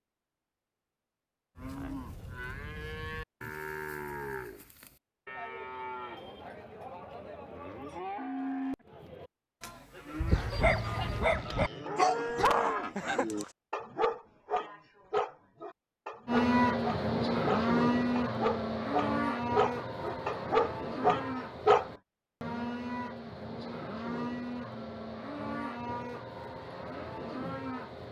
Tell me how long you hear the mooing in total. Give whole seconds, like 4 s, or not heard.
24 s.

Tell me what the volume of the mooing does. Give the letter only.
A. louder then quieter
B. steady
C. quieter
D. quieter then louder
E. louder
A.